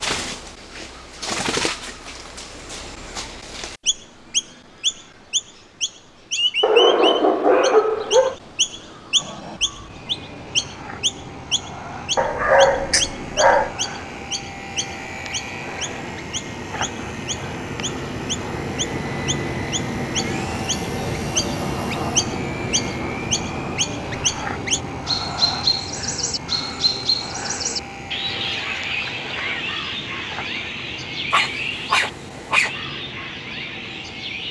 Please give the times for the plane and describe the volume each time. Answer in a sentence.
The plane can be heard from 9.2 to 34.4 s, getting louder then quieter.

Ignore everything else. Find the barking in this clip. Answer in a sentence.
The barking can be heard from 6.6 to 8.3 s, from 12.2 to 13.7 s and from 31.3 to 32.7 s.